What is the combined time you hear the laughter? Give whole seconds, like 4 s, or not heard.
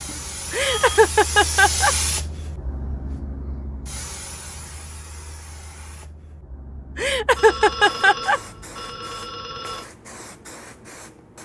3 s.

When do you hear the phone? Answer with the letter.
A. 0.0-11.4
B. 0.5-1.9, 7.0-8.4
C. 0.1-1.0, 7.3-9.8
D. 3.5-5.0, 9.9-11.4
C.